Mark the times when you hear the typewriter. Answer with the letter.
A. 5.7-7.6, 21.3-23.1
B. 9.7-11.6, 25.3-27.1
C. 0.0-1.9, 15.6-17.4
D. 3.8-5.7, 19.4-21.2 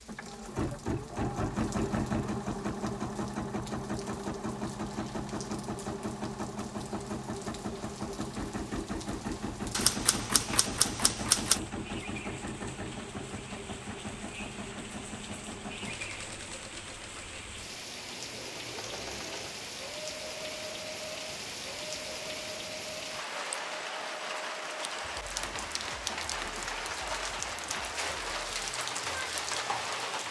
B.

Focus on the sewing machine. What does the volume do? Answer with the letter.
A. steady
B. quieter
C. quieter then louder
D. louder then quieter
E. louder
B.